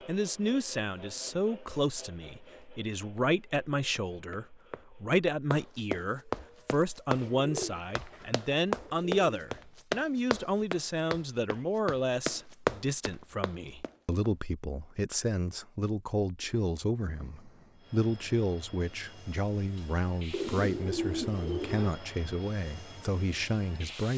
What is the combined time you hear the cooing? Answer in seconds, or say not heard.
4 s.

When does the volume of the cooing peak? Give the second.
21 s.